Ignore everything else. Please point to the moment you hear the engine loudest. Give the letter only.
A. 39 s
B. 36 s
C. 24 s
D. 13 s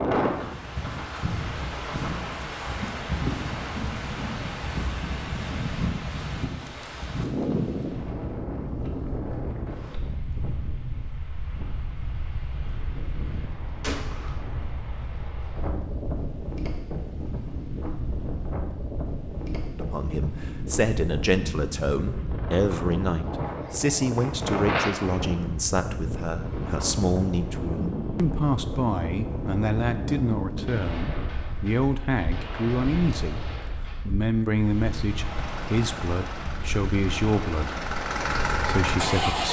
A.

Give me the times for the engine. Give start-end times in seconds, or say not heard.
35.5-39.4.